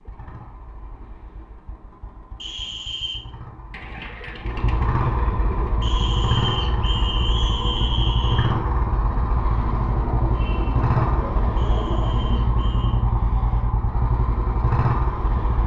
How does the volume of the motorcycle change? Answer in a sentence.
The volume of the motorcycle goes up.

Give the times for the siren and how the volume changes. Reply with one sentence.
You can't hear the siren here.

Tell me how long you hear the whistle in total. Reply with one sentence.
The whistle can be heard for 5 seconds in total.